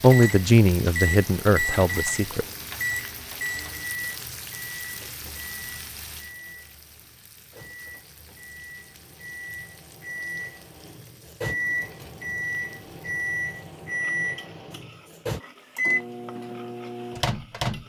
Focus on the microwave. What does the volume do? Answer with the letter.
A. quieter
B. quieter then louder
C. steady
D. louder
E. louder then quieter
B.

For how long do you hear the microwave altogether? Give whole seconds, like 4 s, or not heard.
18 s.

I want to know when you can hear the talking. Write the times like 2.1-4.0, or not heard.
0.0-2.5.